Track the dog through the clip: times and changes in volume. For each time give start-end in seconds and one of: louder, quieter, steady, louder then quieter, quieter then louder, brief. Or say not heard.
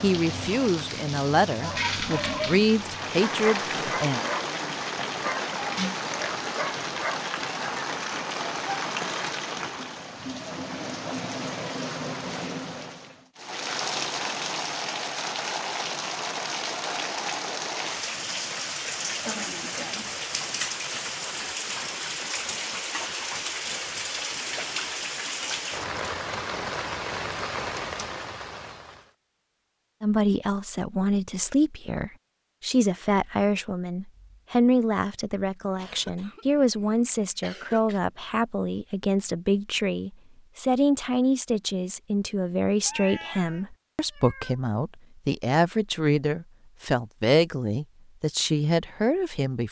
1.6-7.2 steady.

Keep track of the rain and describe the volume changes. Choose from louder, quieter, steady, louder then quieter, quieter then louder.
steady.